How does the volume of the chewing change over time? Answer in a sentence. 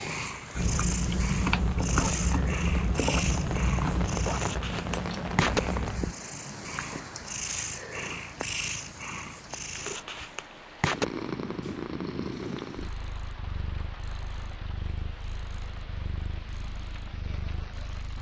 The loudness of the chewing goes down.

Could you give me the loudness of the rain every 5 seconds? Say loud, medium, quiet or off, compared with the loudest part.
loud, loud, medium, medium.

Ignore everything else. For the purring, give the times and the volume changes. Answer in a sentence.
You can hear the purring from 0.0 to 18.1 s, getting quieter.